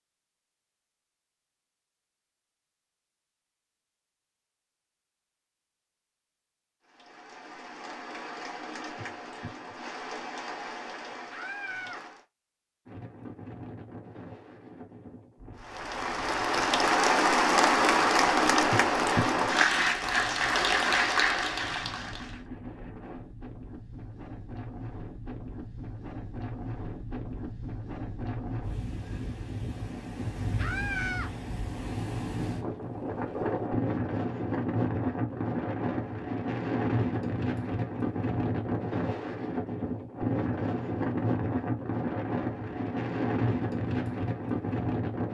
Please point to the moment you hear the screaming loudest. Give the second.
31 s.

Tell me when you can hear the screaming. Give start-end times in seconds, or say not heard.
11.3-12.1, 30.6-31.3.